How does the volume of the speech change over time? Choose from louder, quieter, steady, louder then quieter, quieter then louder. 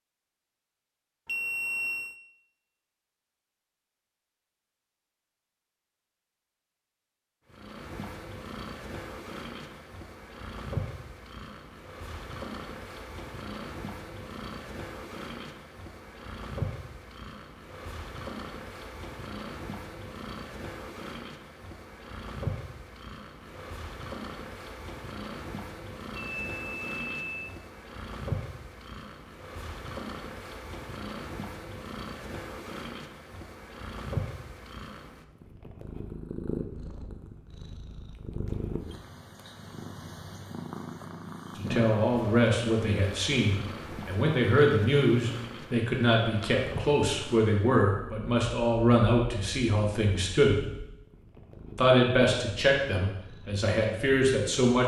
steady.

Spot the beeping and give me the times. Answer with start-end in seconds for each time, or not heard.
1.2-2.1, 26.1-27.6, 38.1-39.0.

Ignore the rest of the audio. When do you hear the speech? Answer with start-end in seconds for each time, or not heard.
41.5-50.6, 51.8-54.8.